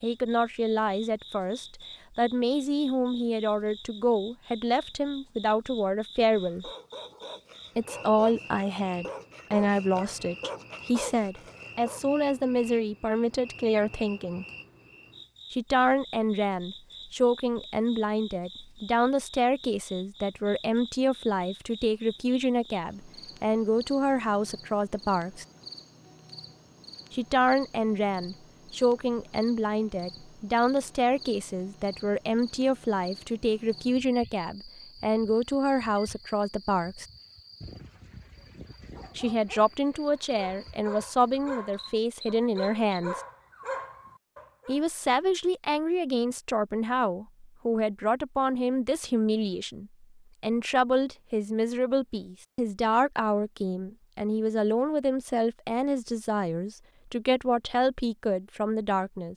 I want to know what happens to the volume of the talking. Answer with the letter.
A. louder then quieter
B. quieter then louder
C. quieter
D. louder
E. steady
E.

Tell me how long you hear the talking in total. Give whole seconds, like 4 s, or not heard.
52 s.